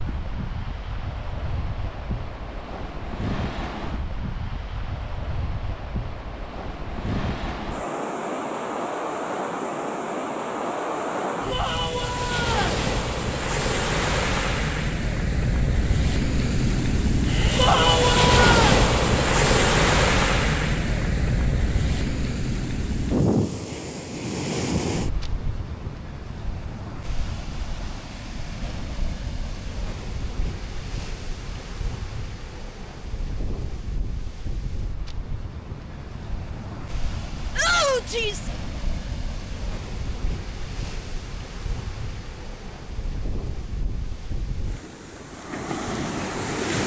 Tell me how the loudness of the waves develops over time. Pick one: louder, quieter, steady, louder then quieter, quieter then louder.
louder then quieter.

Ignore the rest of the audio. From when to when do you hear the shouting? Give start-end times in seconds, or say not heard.
11.5-12.8, 17.6-18.8, 37.5-38.5.